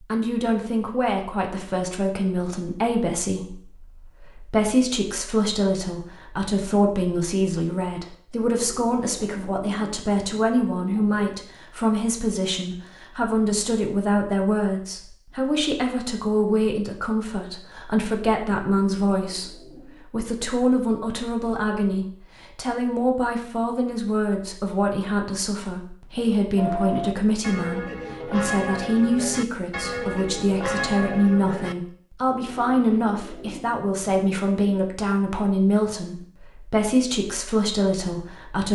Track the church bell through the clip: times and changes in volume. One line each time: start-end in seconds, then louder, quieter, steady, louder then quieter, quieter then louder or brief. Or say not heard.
26.6-31.8 steady.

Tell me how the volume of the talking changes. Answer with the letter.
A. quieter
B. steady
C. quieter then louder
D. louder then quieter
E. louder
B.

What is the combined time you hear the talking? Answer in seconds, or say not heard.
39 s.